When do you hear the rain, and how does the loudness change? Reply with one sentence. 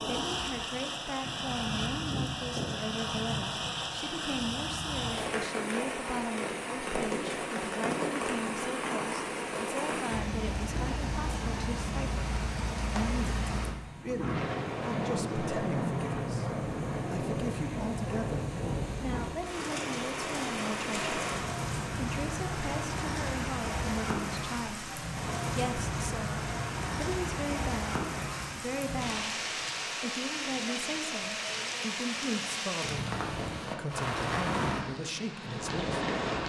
The rain can be heard from 0.0 to 36.4 s, at a steady volume.